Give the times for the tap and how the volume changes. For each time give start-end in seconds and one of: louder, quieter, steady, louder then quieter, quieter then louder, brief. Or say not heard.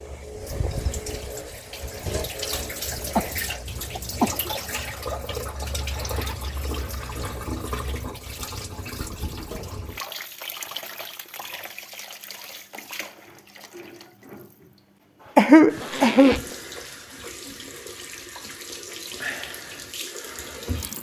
0.0-20.9 quieter then louder.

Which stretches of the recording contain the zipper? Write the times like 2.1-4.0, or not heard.
5.9-7.2, 15.7-16.6.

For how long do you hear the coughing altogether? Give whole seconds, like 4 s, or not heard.
3 s.